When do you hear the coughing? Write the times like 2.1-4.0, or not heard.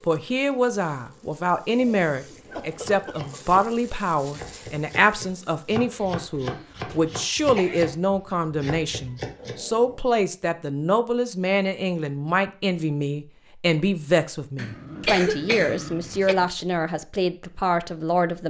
2.5-3.6, 6.2-8.0, 14.6-16.4.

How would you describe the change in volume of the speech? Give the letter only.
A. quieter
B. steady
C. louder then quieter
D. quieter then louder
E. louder
B.